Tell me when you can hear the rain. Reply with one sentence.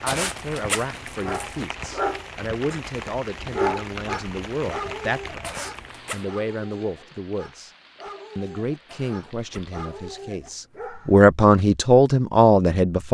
The rain can be heard from 0.0 to 10.2 s.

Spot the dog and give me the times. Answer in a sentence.
You can hear the dog from 1.2 to 11.3 s.